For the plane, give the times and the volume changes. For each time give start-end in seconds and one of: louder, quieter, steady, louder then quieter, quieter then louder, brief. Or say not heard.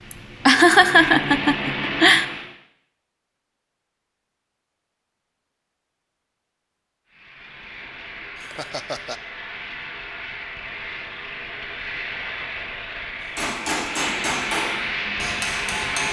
0.0-2.5 brief
7.0-16.0 louder.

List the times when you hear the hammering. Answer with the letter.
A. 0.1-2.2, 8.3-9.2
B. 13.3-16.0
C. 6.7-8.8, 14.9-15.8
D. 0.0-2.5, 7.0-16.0
B.